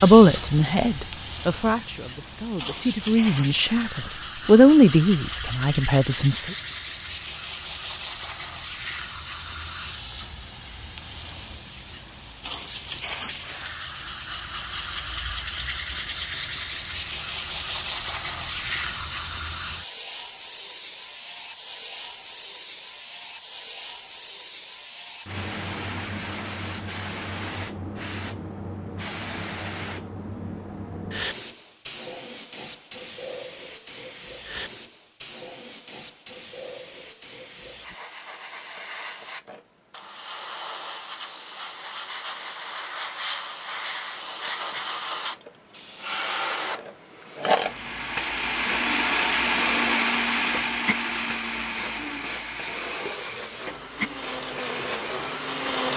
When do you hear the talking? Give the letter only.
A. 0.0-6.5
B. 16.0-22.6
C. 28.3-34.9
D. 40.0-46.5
A.